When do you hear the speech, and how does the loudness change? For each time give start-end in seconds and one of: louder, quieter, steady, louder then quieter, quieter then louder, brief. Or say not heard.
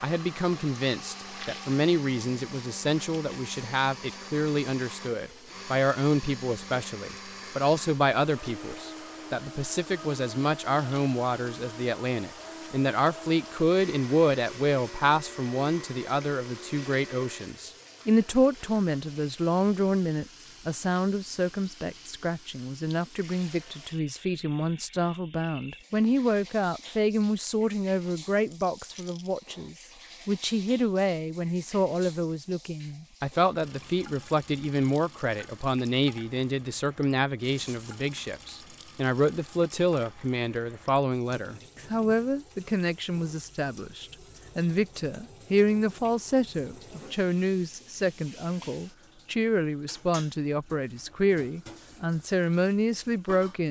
0.0-53.6 steady.